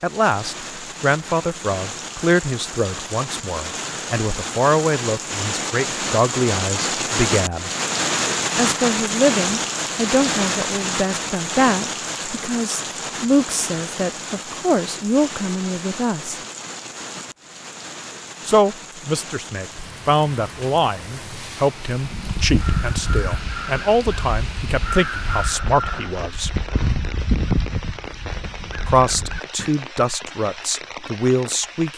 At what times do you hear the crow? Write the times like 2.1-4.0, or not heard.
21.9-29.7.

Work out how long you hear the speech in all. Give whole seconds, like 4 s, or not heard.
27 s.